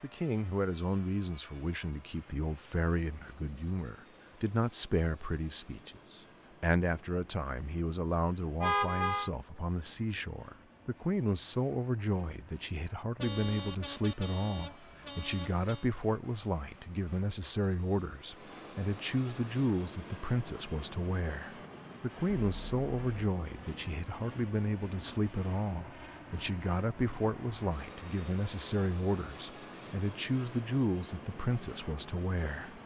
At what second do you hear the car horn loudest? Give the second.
9 s.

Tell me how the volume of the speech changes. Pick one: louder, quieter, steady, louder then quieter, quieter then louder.
steady.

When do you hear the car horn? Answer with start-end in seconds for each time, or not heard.
8.6-9.3, 13.2-15.8, 22.4-23.1.